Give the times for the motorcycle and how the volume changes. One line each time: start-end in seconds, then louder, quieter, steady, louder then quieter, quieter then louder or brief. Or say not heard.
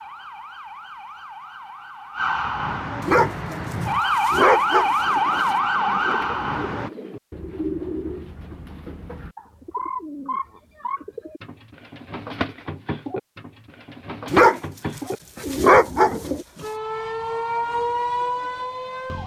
not heard.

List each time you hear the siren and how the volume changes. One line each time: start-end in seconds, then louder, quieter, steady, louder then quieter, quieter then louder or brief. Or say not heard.
0.0-6.9 louder
16.6-19.2 brief.